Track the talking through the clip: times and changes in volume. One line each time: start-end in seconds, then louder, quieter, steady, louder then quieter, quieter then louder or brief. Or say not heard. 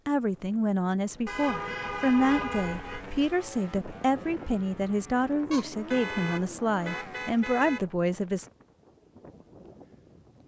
0.1-8.4 steady.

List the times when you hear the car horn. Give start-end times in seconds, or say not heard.
1.2-3.0, 5.5-7.8.